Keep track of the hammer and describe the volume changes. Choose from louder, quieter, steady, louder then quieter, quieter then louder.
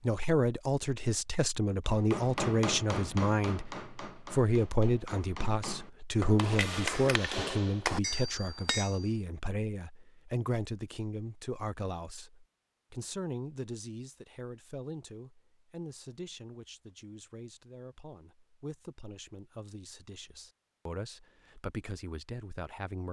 quieter then louder.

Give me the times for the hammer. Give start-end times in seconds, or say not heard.
1.9-9.1.